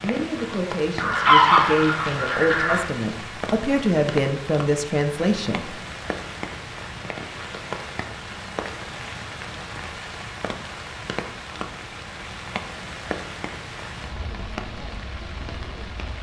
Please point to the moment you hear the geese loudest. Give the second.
1 s.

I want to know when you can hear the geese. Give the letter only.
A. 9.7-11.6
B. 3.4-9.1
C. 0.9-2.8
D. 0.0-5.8
C.